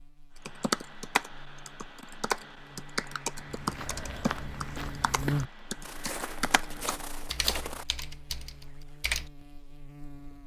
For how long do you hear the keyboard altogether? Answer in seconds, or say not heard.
9 s.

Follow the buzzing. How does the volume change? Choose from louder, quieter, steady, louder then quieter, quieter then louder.
louder then quieter.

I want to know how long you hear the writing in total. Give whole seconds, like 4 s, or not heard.
not heard.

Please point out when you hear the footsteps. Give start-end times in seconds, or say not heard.
3.4-7.8.